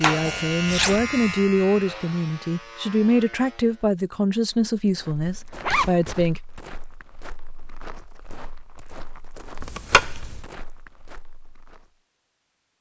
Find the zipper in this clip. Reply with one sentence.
The zipper can be heard from 0.7 to 1.1 s, from 5.2 to 6.1 s and from 9.6 to 10.4 s.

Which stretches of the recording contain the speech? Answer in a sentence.
The speech can be heard from 0.0 to 6.4 s.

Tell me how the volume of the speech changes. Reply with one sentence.
The volume of the speech stays about the same.